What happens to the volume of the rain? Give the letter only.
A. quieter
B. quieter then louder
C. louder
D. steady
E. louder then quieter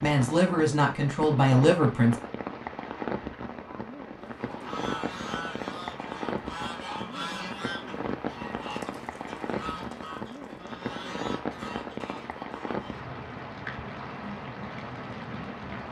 D.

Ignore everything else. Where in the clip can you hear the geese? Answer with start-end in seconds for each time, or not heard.
4.4-13.1.